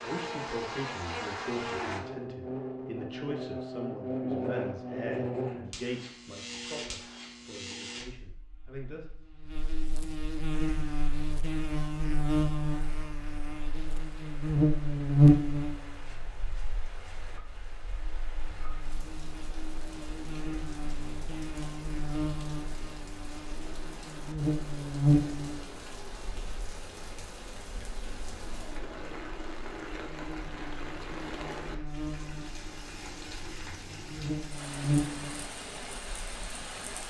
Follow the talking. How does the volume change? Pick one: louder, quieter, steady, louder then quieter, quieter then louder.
quieter.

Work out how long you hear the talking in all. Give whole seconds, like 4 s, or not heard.
9 s.